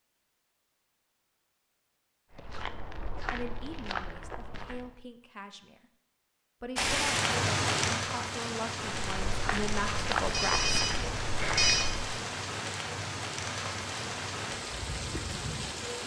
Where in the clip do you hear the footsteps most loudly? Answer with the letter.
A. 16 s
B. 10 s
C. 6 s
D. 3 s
B.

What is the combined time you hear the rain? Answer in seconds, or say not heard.
9 s.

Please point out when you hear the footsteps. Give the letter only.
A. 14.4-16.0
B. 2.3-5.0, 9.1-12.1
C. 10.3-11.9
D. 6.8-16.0
B.